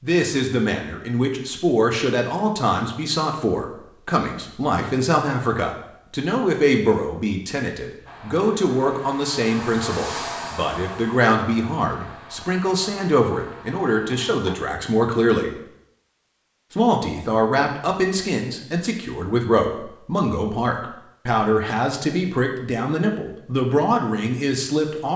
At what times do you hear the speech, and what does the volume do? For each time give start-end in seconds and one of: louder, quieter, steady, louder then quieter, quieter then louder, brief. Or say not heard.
0.0-15.5 steady
16.7-25.1 steady.